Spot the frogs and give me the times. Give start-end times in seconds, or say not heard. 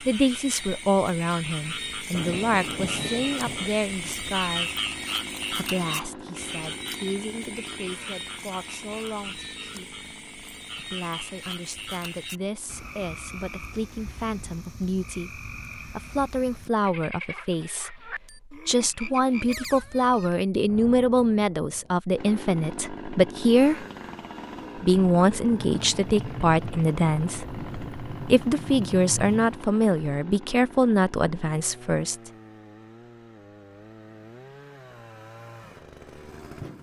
0.0-20.4.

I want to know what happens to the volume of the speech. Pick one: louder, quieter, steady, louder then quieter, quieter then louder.
quieter then louder.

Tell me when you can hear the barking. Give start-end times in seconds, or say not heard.
not heard.